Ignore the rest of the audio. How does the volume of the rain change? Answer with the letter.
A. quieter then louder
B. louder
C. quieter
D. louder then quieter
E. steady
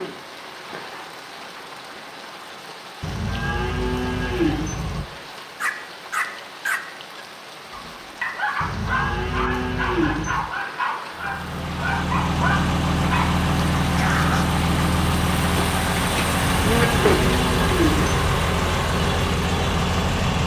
B.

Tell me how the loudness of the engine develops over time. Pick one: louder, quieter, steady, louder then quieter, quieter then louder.
steady.